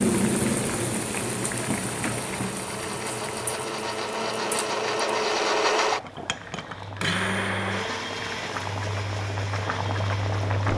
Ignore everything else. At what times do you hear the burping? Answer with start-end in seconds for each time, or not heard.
not heard.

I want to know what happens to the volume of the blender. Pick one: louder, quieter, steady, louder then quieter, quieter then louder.
louder then quieter.